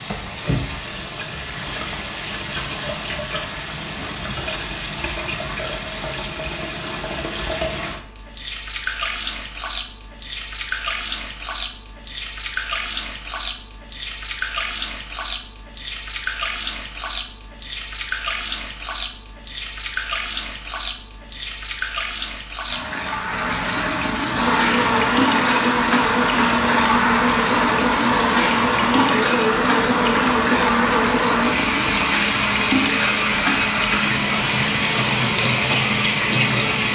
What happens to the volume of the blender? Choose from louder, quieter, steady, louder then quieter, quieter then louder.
steady.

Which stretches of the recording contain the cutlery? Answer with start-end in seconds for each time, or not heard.
not heard.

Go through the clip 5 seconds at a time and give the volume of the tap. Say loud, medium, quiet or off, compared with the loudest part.
medium, medium, medium, medium, loud, loud, loud, loud.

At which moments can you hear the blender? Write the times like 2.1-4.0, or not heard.
24.4-36.8.